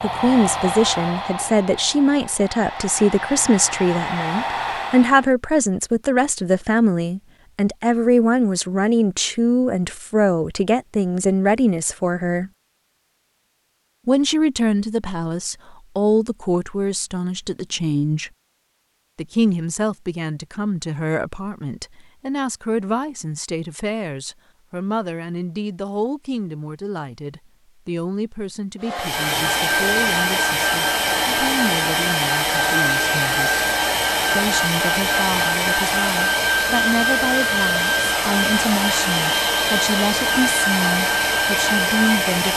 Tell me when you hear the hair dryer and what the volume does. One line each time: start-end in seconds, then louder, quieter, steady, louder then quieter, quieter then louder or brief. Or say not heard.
0.0-5.3 quieter then louder
28.8-42.5 steady.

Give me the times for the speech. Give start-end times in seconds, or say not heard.
0.0-12.5, 14.1-18.3, 19.1-33.6, 34.4-42.5.